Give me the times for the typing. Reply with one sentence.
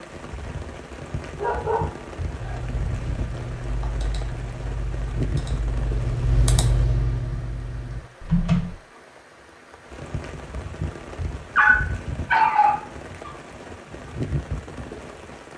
You can hear the typing from 2.4 to 8.8 s.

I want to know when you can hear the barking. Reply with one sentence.
You can hear the barking from 1.4 to 2.6 s and from 11.6 to 13.3 s.